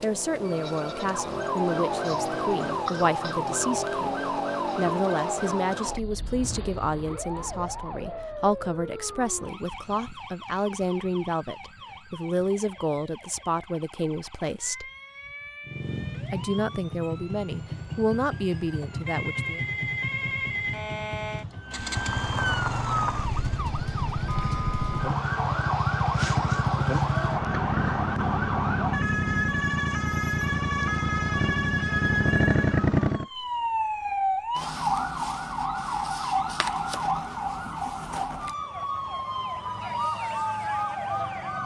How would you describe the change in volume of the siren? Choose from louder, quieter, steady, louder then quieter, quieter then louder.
quieter then louder.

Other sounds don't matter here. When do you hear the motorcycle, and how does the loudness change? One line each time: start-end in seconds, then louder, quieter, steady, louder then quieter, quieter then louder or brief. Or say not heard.
15.7-33.2 louder.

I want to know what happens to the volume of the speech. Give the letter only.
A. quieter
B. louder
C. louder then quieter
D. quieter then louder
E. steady
E.